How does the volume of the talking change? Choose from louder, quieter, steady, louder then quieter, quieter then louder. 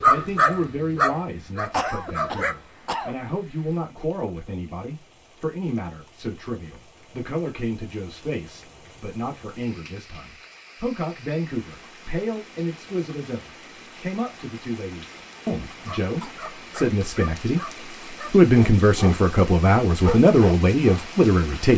louder.